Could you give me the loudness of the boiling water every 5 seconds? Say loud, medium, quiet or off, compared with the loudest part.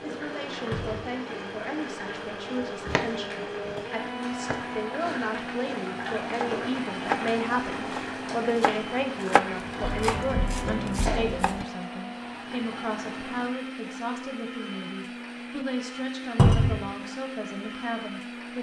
medium, loud, loud, off.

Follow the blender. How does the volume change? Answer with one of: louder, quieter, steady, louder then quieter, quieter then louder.
steady.